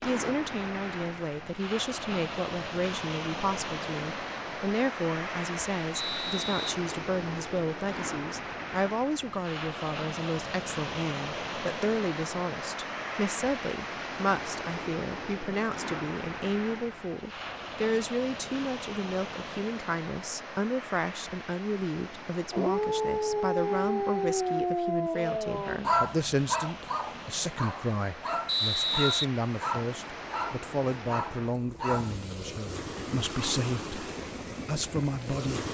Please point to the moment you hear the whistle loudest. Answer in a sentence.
The loudest moment of the whistle is at 29 seconds.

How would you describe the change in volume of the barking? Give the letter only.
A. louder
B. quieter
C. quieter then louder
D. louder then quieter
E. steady
B.